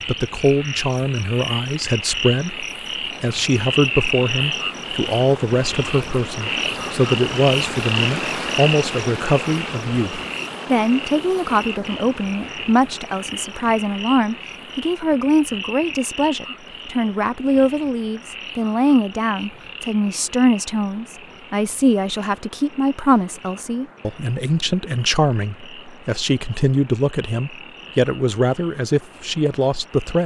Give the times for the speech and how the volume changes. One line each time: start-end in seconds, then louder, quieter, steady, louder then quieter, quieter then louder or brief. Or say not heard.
0.1-30.2 steady.